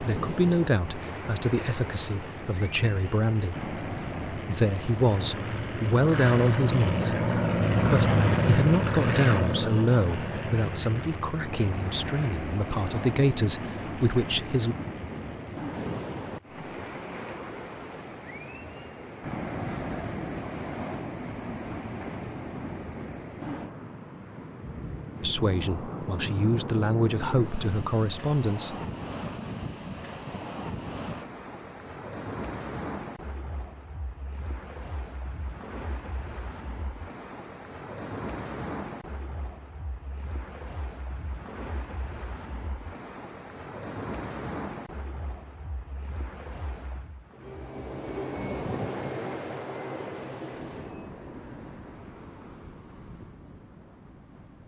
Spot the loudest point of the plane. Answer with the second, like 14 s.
8 s.